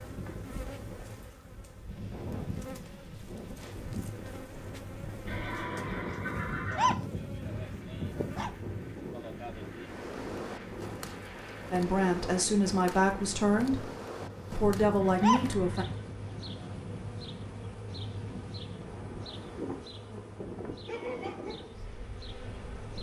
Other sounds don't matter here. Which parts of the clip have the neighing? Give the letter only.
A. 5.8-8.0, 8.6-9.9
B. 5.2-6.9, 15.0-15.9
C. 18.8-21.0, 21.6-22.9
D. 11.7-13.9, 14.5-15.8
B.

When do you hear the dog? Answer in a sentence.
The dog can be heard from 6.0 to 8.5 s and from 14.5 to 16.1 s.